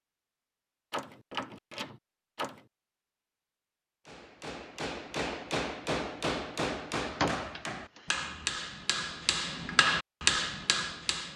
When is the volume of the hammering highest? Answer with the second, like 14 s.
10 s.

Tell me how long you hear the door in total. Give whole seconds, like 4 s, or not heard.
3 s.